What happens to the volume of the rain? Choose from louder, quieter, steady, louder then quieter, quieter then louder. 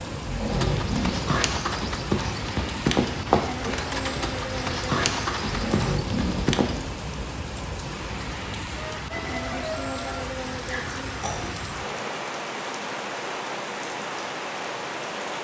steady.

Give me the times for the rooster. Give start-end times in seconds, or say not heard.
8.8-10.2.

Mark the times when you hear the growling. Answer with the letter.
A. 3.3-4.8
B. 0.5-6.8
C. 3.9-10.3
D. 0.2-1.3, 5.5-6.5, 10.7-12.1
D.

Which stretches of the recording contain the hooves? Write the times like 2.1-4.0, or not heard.
0.5-6.8.